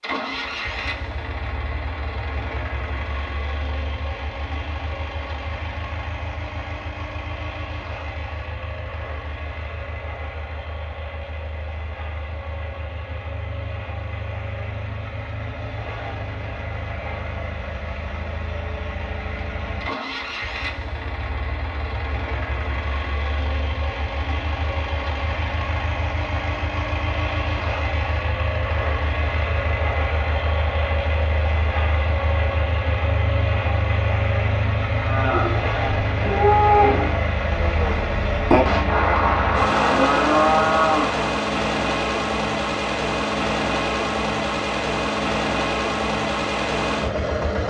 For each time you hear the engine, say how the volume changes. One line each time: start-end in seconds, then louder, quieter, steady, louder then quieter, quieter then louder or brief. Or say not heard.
0.0-47.6 louder.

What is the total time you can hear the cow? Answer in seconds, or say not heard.
6 s.